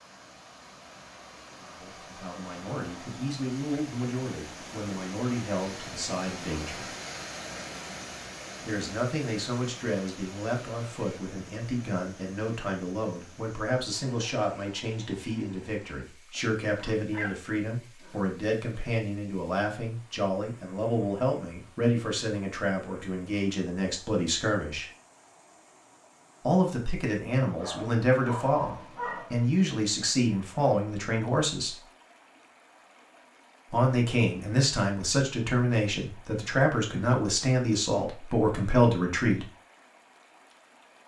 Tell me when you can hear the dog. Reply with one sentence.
You can hear the dog from 16.3 to 18.2 s and from 27.6 to 29.4 s.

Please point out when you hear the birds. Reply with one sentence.
You can't hear the birds here.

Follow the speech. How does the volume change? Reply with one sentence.
The volume of the speech goes up.